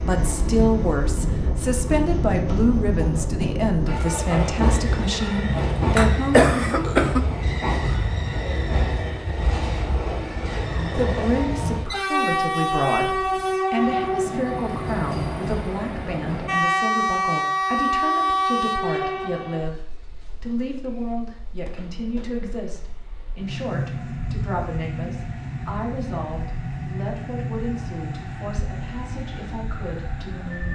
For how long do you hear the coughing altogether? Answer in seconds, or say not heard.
2 s.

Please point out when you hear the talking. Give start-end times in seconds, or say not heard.
0.1-6.5, 10.9-30.7.